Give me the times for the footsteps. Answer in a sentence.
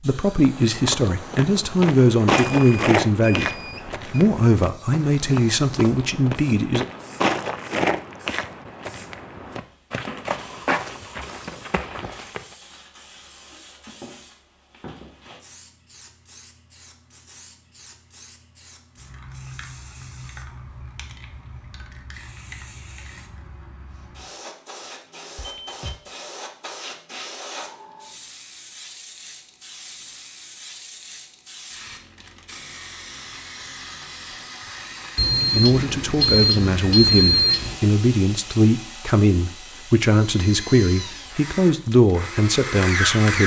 The footsteps can be heard from 0.4 to 12.6 s.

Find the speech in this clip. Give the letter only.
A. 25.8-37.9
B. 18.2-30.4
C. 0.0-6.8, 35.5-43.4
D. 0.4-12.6
C.